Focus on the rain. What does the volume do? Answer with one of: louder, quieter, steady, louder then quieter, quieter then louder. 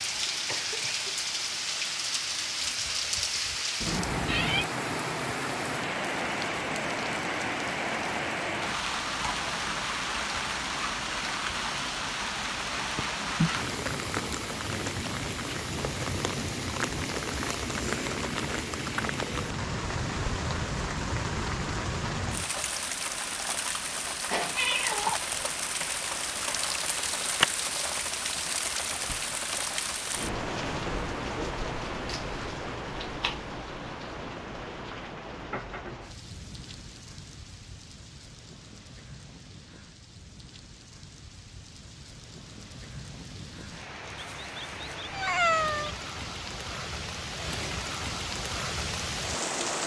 quieter.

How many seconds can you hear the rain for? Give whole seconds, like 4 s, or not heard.
50 s.